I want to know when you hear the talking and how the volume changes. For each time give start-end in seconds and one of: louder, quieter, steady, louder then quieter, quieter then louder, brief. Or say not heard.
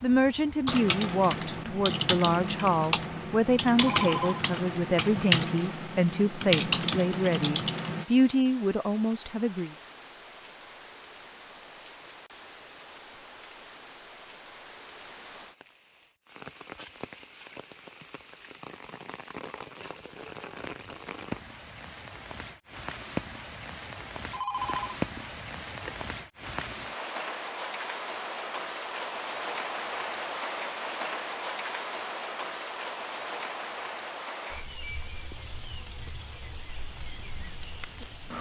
0.0-9.8 steady.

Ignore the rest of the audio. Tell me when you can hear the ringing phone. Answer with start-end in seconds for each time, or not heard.
3.8-4.5, 24.3-26.1.